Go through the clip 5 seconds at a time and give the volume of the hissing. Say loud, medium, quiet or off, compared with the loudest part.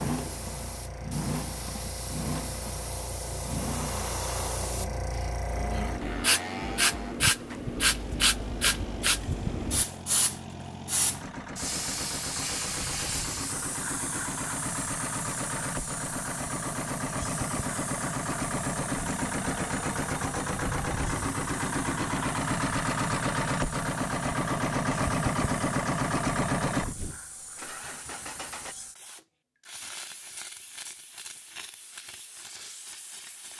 medium, loud, medium, quiet, quiet, quiet, quiet.